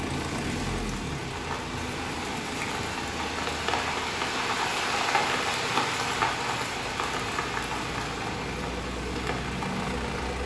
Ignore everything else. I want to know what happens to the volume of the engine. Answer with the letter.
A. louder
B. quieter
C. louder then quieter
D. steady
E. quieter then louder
E.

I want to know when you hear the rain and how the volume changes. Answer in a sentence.
You can hear the rain from 0.0 to 10.4 s, getting louder then quieter.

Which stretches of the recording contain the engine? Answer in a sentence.
The engine can be heard from 0.0 to 10.4 s.